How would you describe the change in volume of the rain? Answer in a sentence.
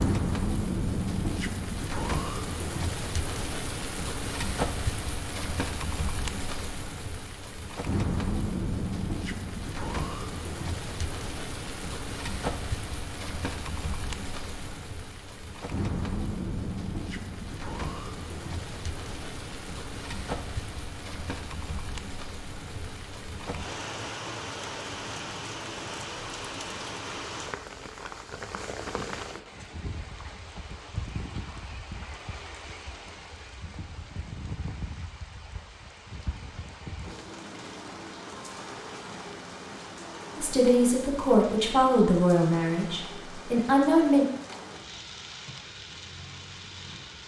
The loudness of the rain goes down.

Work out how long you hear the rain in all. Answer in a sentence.
You can hear the rain for 47 seconds altogether.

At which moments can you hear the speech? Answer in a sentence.
The speech can be heard from 40.4 to 44.2 s.